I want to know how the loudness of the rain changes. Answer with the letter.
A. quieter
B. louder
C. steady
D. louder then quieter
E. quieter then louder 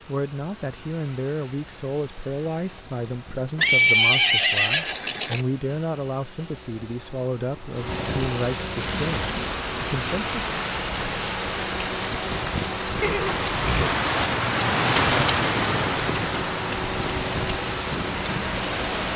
D.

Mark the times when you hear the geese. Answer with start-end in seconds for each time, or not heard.
not heard.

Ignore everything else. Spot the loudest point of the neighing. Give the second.
4 s.